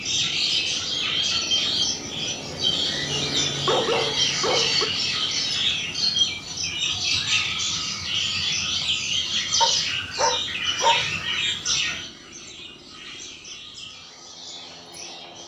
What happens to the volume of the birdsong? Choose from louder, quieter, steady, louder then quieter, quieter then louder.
quieter.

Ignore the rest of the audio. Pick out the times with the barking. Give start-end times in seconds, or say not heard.
3.1-4.8, 9.6-11.1.